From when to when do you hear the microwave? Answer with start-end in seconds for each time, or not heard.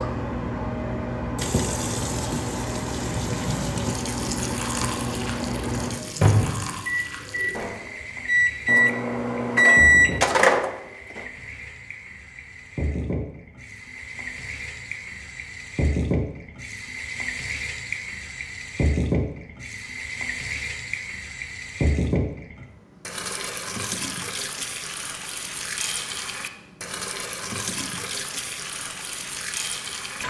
0.0-11.2.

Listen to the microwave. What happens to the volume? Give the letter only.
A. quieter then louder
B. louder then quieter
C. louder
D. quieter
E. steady
C.